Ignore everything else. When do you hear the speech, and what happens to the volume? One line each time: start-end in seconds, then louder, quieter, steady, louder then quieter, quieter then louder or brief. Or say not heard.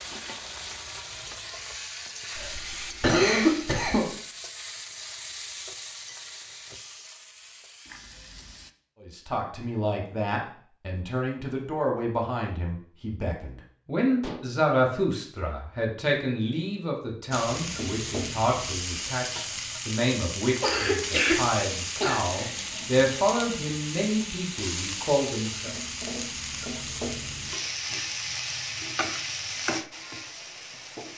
9.0-25.7 steady.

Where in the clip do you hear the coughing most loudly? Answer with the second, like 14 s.
3 s.